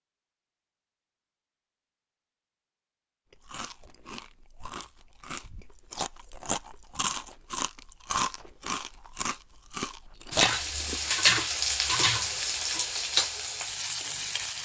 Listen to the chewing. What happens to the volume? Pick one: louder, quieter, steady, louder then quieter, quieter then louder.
louder.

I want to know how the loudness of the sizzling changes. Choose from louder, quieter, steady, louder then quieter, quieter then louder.
quieter.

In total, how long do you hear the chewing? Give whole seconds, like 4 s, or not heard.
8 s.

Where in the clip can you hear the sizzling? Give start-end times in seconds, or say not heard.
10.3-14.6.